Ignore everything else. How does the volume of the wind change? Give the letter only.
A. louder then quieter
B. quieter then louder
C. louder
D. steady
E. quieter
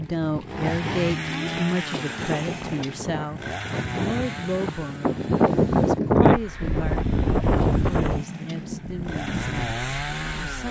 A.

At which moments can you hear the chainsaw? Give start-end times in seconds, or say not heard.
0.0-10.6.